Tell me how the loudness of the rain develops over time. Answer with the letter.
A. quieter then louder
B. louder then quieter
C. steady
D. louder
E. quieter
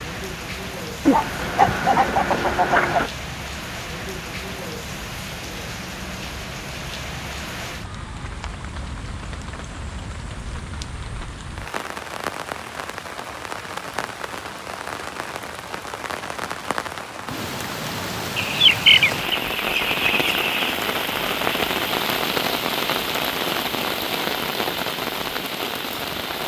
D.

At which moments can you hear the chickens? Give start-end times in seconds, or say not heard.
1.1-3.1, 18.4-20.8.